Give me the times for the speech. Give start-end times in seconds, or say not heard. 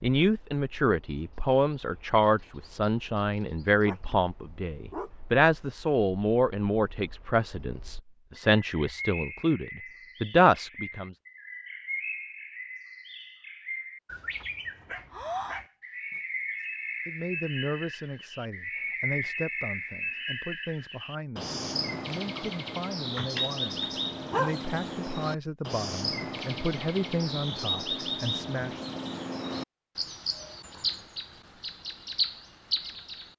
0.0-11.2, 17.1-28.8.